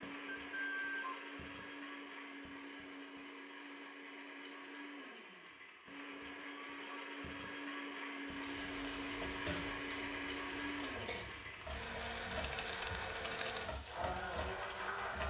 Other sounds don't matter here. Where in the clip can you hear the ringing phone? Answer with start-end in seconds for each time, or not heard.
0.2-1.6.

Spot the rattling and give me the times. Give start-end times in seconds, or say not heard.
11.7-13.7.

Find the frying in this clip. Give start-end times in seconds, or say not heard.
8.2-15.2.